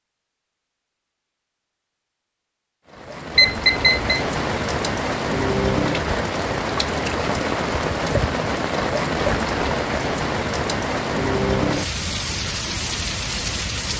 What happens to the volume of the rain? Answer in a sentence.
The loudness of the rain stays about the same.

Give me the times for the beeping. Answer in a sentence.
You can hear the beeping from 3.4 to 4.2 s.